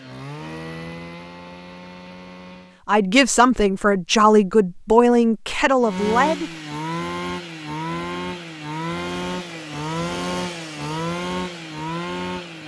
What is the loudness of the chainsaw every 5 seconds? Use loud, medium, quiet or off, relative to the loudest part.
medium, loud, loud.